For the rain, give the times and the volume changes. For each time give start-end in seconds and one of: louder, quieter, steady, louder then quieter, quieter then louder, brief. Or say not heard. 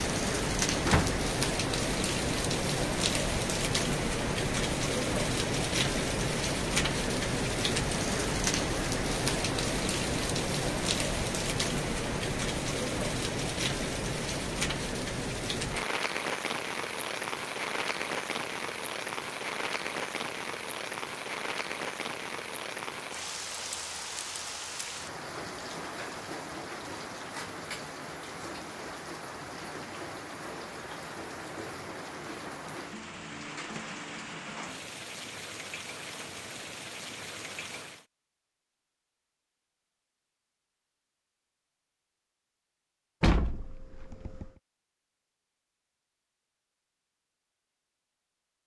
0.0-38.0 quieter.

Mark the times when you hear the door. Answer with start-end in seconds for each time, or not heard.
0.8-1.2, 43.2-44.5.